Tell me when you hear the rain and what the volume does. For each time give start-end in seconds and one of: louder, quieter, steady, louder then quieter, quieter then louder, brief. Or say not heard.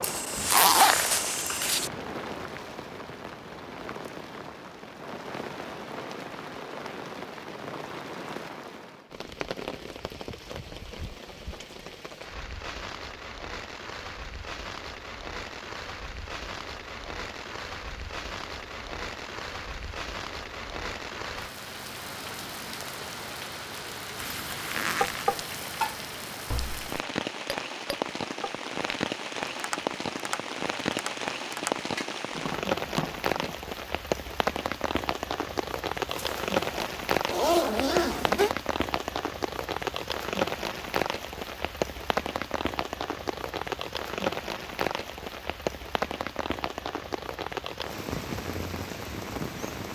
0.0-49.9 louder.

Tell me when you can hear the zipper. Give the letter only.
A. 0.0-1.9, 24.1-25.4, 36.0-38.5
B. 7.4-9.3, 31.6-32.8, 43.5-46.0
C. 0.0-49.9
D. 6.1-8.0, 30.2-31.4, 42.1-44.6
A.